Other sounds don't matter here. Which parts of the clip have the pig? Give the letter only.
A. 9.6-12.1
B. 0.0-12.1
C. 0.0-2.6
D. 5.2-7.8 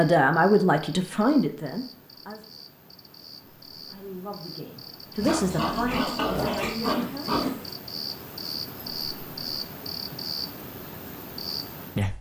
D.